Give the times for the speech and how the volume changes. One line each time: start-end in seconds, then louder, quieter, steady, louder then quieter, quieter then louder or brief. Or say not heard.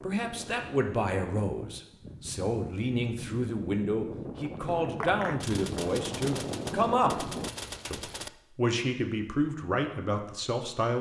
0.0-10.9 steady.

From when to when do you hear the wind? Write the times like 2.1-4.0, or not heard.
0.0-7.5.